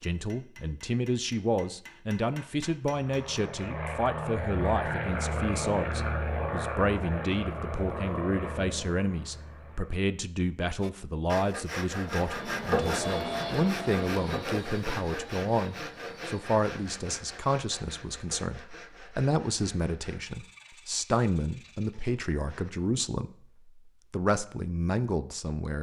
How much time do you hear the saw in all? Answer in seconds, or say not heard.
12 s.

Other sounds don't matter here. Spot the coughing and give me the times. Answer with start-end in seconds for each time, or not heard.
not heard.